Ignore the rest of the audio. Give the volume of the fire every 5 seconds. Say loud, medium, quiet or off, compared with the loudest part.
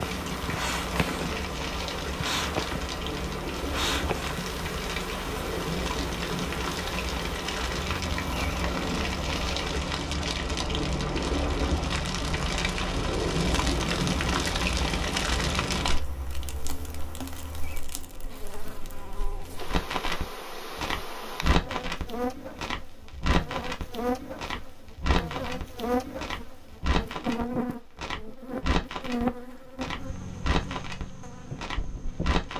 medium, loud, loud, medium, medium, medium, medium.